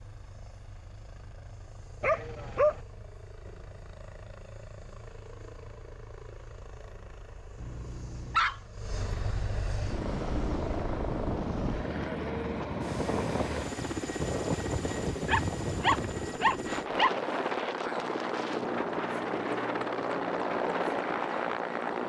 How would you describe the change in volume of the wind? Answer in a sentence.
The loudness of the wind stays about the same.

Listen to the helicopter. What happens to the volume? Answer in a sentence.
The volume of the helicopter goes up.